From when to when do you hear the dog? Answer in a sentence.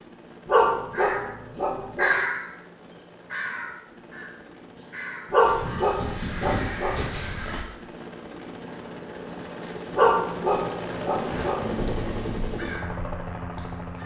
You can hear the dog from 0.5 to 2.1 s, from 5.3 to 7.0 s and from 9.9 to 11.8 s.